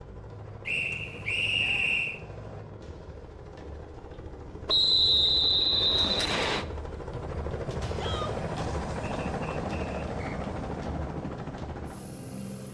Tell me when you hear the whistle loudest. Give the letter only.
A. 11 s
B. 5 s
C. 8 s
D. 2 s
B.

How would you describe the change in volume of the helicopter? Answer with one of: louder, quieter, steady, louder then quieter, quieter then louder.
louder.